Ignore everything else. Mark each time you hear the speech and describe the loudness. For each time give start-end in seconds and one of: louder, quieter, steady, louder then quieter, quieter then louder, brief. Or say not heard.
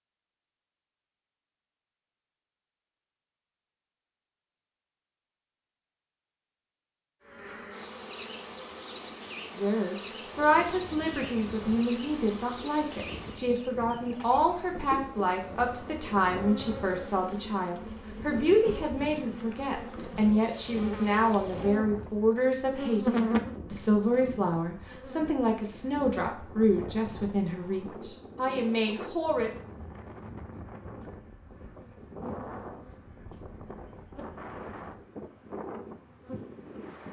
9.6-29.5 steady.